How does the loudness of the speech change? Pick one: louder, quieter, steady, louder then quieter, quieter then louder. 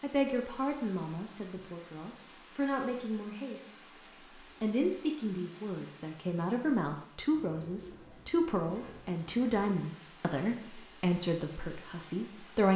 steady.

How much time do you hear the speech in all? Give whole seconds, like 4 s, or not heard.
12 s.